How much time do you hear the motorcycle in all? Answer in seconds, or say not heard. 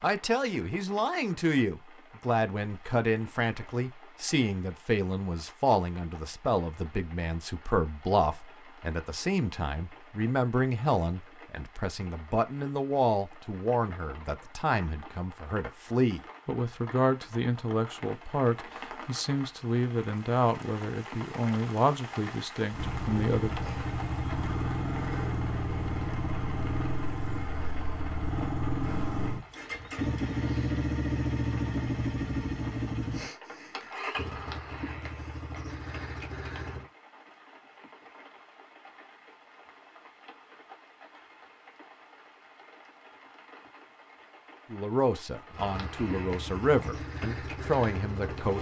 17 s.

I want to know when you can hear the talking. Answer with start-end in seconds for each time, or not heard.
0.0-23.7, 44.7-48.5.